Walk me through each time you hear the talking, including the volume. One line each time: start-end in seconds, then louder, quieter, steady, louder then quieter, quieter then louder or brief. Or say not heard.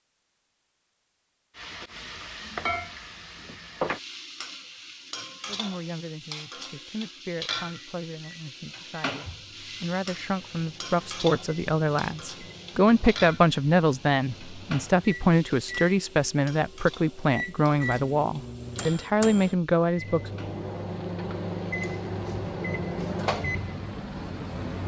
5.5-20.4 louder.